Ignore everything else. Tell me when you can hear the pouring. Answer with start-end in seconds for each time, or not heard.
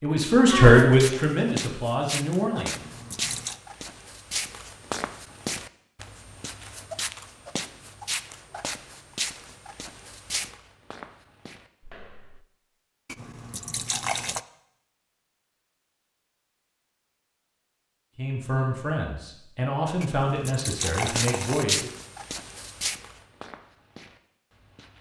2.6-3.6, 13.1-14.4, 20.0-21.6.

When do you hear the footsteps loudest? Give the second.
22 s.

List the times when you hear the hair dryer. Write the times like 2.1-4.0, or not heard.
not heard.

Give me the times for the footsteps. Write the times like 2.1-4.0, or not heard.
0.7-12.4, 20.9-24.9.